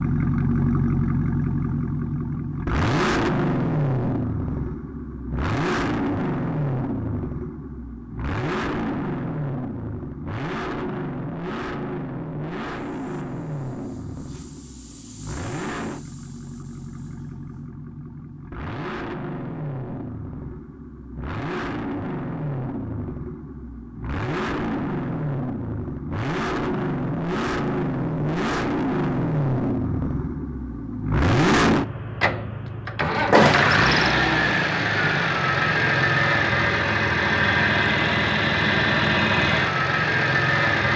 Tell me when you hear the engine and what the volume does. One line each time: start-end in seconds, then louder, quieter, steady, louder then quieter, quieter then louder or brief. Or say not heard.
0.0-40.9 quieter then louder.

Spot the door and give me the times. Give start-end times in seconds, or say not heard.
33.3-33.8.